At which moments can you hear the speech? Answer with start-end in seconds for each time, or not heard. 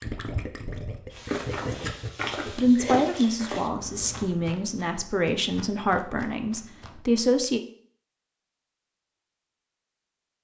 2.5-7.6.